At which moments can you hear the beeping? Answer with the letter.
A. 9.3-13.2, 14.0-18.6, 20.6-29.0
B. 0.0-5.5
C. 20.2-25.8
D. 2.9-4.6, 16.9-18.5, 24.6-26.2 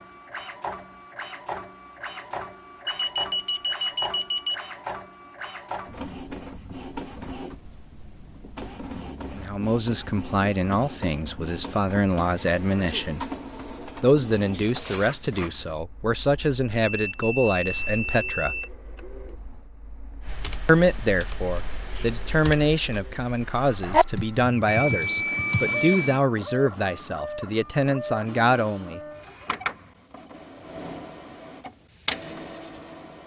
D.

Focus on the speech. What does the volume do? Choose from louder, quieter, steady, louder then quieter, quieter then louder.
steady.